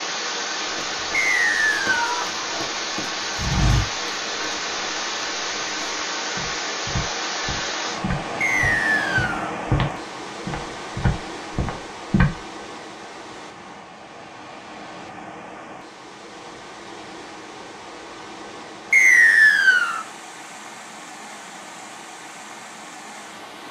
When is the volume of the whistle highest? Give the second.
19 s.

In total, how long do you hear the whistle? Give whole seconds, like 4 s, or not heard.
3 s.